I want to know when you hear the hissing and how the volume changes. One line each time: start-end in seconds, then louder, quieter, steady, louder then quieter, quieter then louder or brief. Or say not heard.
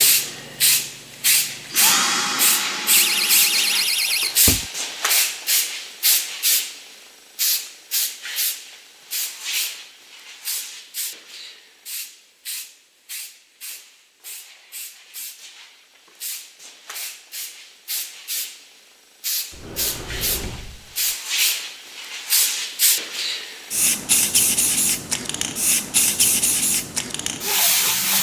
0.0-28.1 quieter then louder.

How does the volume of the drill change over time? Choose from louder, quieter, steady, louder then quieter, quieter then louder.
louder then quieter.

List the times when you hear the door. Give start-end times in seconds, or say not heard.
2.9-4.7, 19.5-21.1.